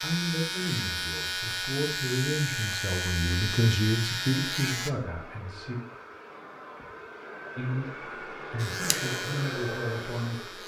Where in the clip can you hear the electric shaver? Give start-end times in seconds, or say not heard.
0.0-4.9, 8.6-10.6.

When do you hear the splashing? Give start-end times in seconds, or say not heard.
not heard.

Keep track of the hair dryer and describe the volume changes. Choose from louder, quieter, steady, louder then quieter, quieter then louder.
louder.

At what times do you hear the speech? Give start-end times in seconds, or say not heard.
0.0-5.8, 7.5-10.6.